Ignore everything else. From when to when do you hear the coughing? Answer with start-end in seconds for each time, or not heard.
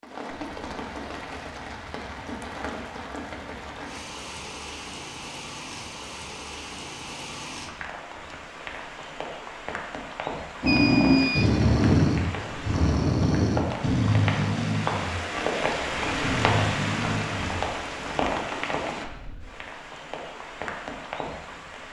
not heard.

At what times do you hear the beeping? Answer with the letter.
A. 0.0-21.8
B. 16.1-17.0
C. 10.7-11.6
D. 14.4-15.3
C.